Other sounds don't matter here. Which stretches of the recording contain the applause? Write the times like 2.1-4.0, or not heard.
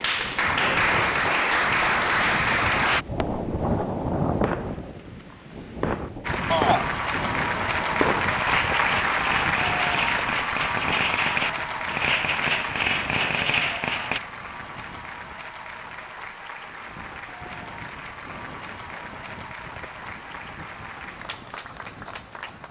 0.0-3.0, 6.2-22.6.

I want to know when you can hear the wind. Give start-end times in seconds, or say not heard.
0.1-22.6.